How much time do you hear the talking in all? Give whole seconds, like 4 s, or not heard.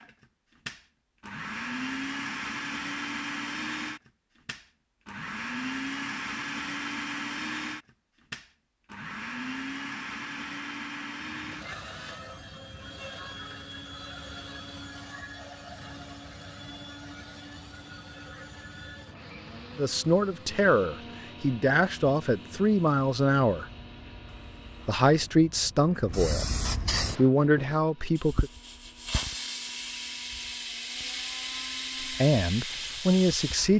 9 s.